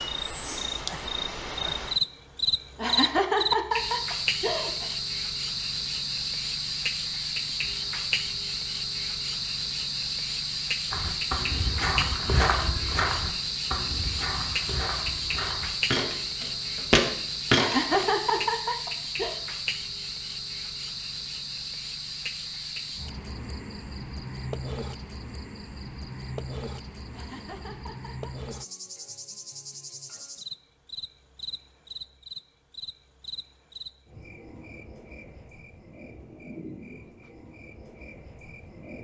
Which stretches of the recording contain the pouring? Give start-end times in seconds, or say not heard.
not heard.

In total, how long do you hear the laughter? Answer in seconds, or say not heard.
5 s.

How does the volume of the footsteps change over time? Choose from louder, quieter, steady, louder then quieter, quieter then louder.
quieter then louder.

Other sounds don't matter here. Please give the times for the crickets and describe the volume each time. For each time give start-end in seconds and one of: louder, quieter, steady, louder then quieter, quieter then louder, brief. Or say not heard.
0.0-39.0 quieter.